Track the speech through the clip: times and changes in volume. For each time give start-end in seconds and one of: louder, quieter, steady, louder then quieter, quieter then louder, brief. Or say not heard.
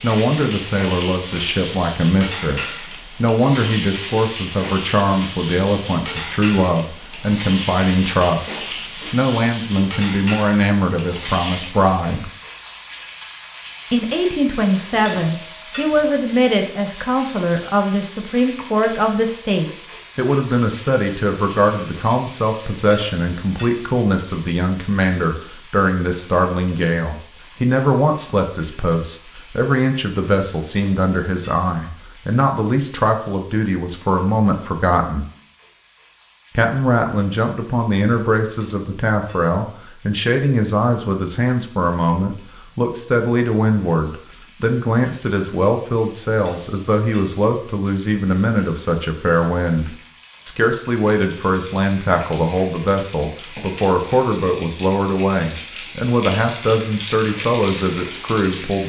0.0-12.3 steady
13.9-35.2 steady
36.5-58.8 steady.